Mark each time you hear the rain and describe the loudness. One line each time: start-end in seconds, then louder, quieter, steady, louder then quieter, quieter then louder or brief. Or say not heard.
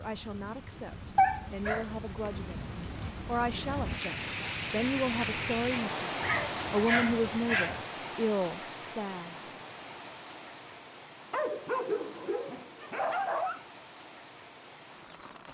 0.0-15.4 louder then quieter.